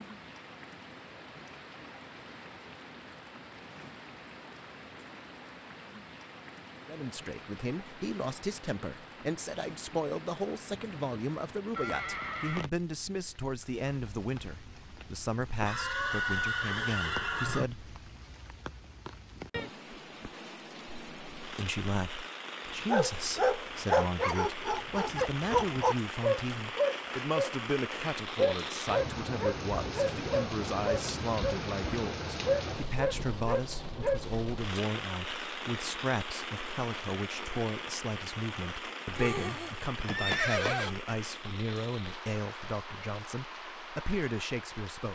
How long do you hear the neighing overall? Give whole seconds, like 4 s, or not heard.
6 s.